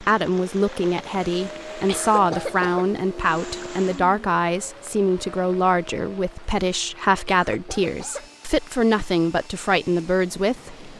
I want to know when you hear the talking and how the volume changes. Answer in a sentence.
The talking can be heard from 0.0 to 10.9 s, at a steady volume.